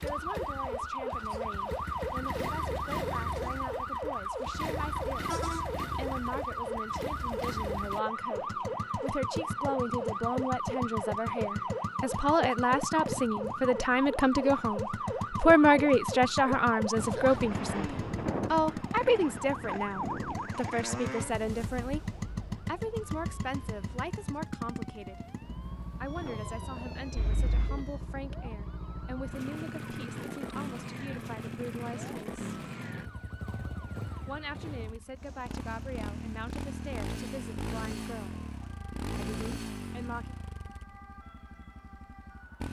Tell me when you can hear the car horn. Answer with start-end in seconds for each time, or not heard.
27.1-27.8.